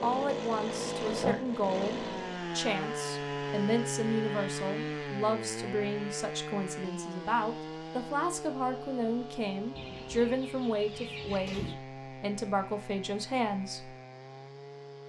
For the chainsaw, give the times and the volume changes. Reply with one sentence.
The chainsaw can be heard from 0.0 to 15.0 s, getting quieter.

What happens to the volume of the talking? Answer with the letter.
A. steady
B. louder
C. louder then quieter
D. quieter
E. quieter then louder
A.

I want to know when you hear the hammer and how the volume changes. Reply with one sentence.
You can't hear the hammer here.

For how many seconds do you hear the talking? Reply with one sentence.
You can hear the talking for 14 seconds altogether.